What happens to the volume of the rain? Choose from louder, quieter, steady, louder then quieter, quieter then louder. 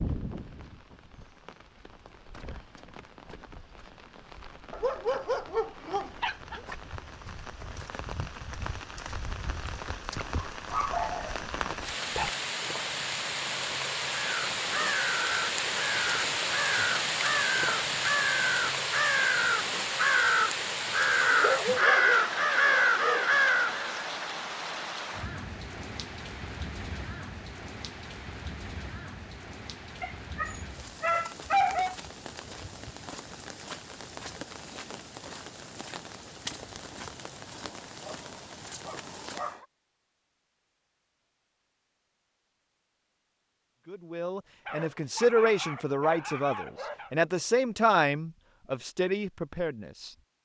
louder then quieter.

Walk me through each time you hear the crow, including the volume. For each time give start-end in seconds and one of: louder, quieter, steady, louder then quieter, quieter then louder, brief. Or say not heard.
14.1-24.1 louder.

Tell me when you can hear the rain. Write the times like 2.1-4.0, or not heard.
0.0-39.6.